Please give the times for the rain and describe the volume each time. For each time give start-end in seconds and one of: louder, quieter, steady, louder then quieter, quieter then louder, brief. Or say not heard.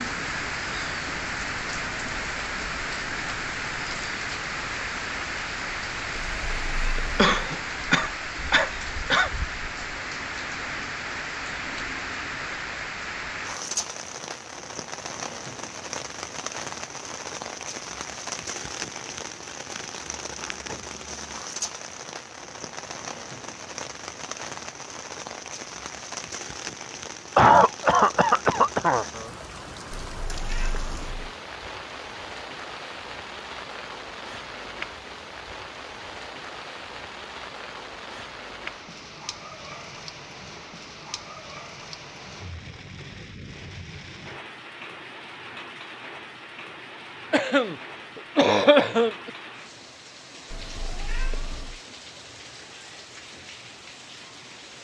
0.0-54.8 quieter.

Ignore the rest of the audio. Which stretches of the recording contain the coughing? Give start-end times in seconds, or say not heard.
7.2-9.3, 27.4-29.1, 47.3-49.3.